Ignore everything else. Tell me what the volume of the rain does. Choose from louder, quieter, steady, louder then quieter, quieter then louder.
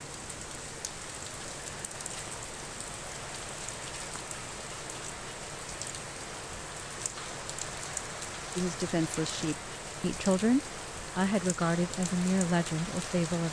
steady.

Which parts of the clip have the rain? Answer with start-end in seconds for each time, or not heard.
0.0-13.4.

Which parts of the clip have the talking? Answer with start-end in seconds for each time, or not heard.
8.6-13.4.